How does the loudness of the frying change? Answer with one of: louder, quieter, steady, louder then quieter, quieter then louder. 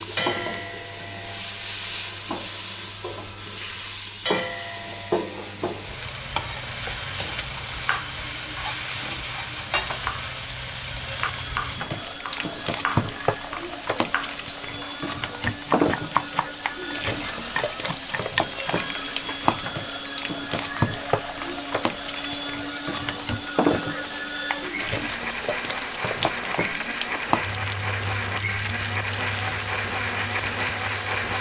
steady.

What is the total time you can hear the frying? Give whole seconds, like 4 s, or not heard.
31 s.